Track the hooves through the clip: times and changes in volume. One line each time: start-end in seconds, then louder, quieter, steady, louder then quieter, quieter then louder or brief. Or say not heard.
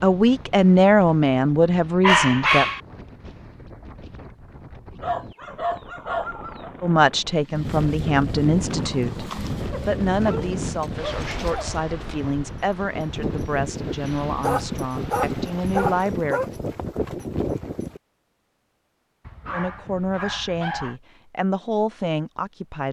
8.6-18.0 louder.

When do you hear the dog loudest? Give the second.
2 s.